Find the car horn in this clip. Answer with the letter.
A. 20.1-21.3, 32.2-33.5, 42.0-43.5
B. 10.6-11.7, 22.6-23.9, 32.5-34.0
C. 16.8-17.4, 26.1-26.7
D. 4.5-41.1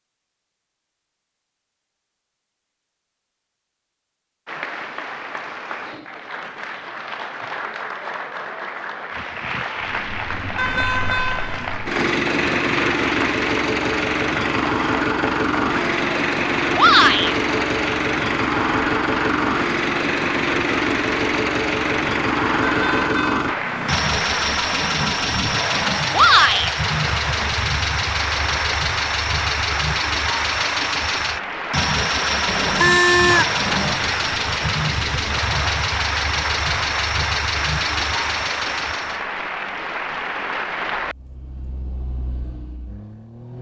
B.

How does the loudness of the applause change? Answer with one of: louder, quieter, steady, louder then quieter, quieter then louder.
steady.